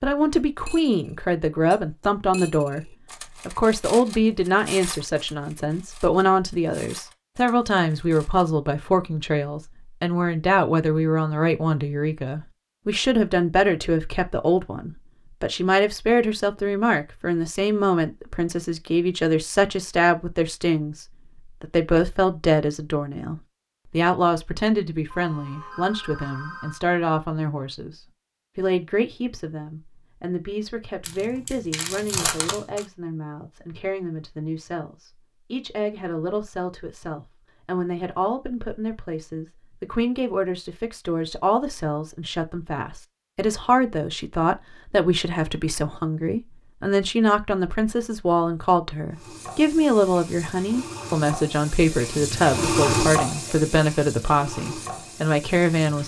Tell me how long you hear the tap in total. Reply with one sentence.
The tap can be heard for 7 seconds in total.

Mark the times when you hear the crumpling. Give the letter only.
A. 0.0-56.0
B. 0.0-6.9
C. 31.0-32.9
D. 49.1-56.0
C.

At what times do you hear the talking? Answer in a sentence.
The talking can be heard from 0.0 to 56.0 s.